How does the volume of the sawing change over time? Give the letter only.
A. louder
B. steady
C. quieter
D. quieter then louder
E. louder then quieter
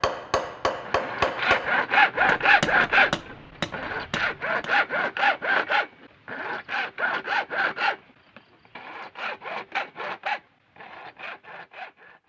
C.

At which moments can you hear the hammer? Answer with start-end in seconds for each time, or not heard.
0.0-4.7.